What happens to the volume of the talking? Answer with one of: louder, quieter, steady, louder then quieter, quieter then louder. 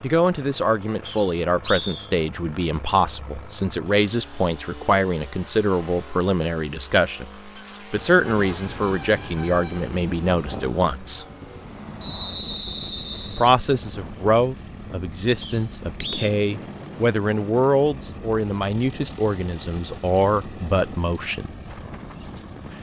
steady.